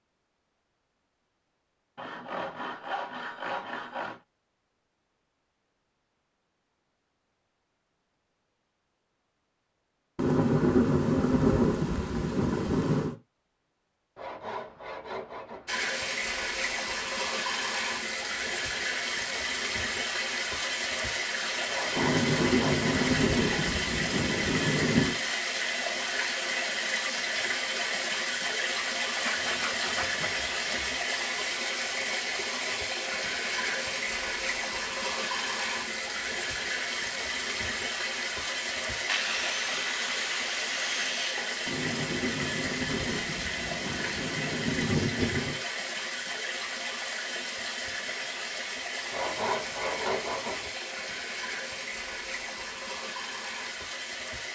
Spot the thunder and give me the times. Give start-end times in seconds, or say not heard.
10.2-13.2, 21.9-25.1, 41.6-45.6.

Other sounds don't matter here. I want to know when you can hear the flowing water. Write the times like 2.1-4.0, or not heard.
15.7-54.5.